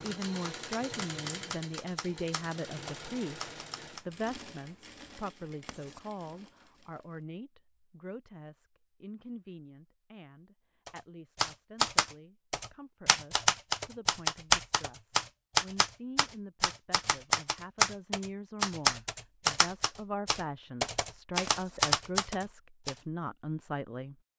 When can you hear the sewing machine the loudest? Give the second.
1 s.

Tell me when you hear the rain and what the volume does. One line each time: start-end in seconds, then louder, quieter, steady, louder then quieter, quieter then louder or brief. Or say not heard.
not heard.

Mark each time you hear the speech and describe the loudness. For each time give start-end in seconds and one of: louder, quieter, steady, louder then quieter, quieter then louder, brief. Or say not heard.
0.0-24.1 quieter then louder.